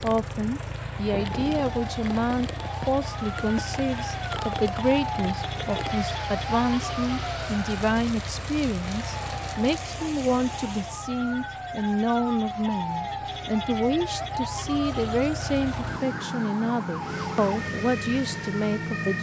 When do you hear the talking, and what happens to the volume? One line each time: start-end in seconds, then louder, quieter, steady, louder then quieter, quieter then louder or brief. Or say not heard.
0.0-19.1 steady.